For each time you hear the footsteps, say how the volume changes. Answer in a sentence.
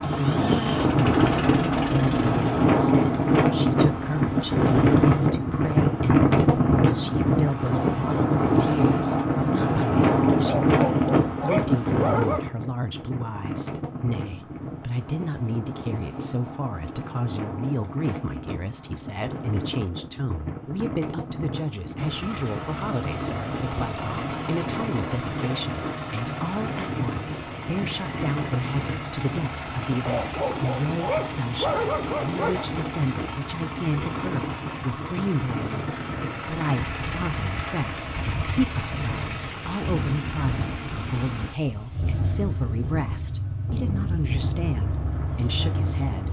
You can't hear the footsteps here.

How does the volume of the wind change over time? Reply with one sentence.
The loudness of the wind goes down.